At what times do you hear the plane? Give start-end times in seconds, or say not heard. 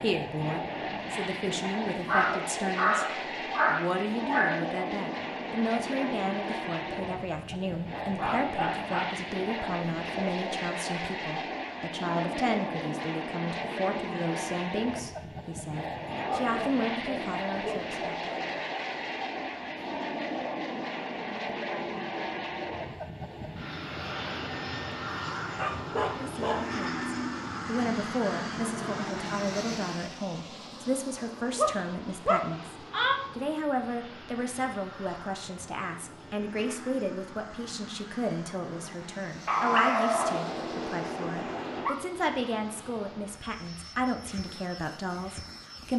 0.0-45.9.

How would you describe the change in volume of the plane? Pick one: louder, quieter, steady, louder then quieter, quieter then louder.
quieter.